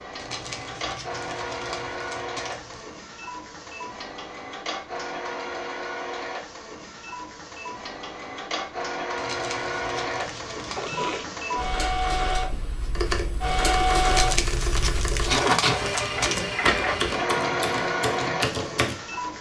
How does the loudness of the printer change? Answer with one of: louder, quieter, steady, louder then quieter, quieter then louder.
louder.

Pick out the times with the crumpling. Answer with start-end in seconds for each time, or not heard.
0.1-2.9, 9.2-10.8, 14.1-16.6.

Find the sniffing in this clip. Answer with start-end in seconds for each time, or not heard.
10.7-11.4.